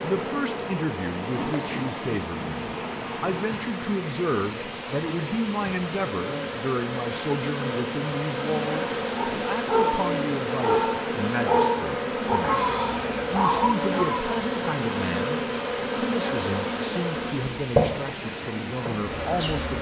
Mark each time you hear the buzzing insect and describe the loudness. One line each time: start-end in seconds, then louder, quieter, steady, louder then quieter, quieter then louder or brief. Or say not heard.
0.0-19.7 louder.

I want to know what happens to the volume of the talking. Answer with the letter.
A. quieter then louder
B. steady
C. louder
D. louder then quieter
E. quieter
B.